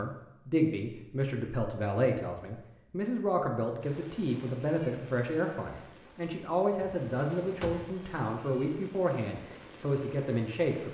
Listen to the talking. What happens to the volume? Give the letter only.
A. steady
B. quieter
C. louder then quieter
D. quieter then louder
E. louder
A.